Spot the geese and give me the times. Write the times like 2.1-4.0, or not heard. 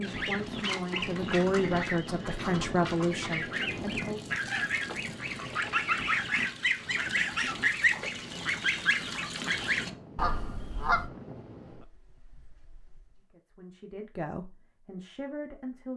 0.0-11.1.